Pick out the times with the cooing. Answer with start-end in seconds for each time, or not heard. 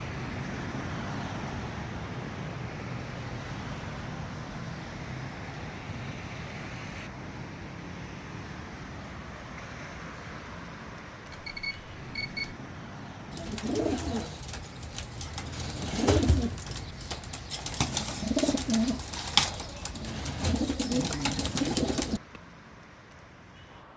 13.3-22.4.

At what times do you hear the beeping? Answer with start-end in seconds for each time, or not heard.
11.3-12.6.